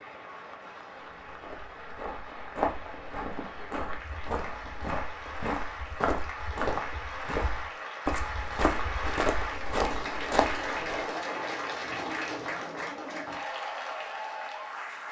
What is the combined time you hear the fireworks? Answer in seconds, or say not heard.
not heard.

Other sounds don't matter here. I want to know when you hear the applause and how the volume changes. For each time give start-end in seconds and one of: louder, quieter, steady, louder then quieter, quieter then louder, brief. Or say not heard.
0.0-15.0 louder.